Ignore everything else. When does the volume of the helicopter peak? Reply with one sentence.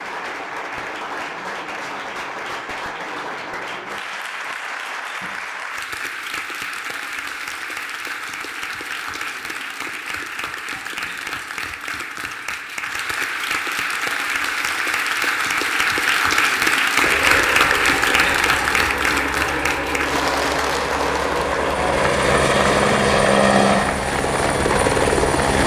The volume of the helicopter peaks at 23 seconds.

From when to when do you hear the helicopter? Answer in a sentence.
The helicopter can be heard from 17.0 to 25.6 s.